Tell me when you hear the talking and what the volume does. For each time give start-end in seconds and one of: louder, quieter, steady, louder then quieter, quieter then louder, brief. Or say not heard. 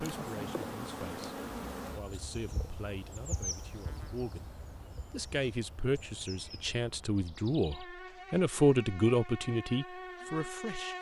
0.0-1.4 brief
1.9-4.5 brief
5.1-10.9 louder then quieter.